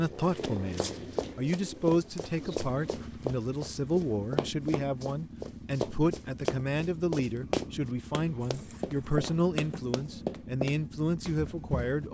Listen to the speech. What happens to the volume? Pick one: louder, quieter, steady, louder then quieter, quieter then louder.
steady.